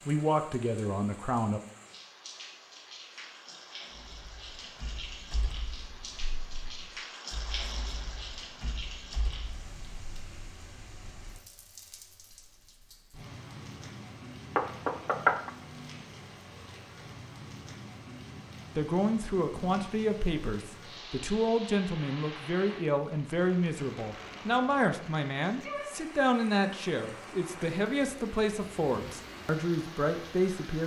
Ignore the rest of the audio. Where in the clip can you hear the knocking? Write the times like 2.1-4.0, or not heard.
14.6-15.5.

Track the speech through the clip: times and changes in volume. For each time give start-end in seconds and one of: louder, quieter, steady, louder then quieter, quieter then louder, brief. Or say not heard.
0.1-1.6 brief
18.8-30.8 steady.